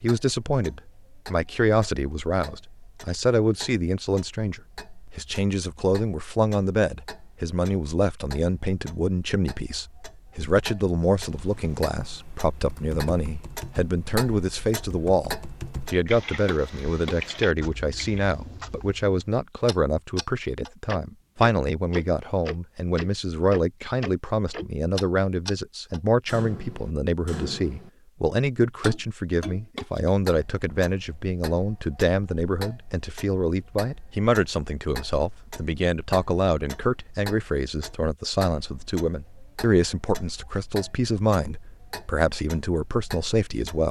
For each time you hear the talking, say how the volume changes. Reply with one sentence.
The talking can be heard from 0.0 to 43.8 s, at a steady volume.